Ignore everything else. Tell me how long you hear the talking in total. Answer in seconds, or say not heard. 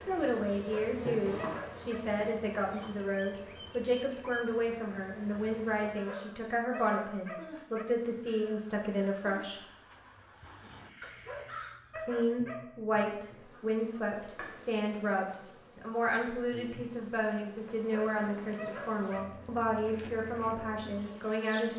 19 s.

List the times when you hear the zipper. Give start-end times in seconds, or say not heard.
not heard.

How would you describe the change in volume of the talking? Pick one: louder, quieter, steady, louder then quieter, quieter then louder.
steady.